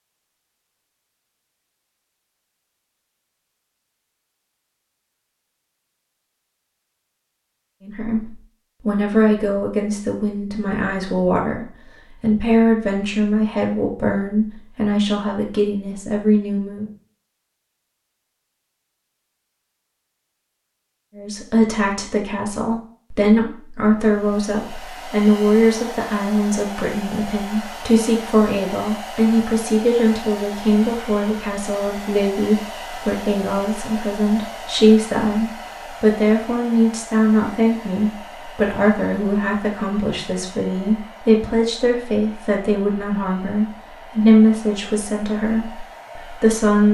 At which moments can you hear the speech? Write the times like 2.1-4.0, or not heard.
7.8-16.9, 21.1-46.9.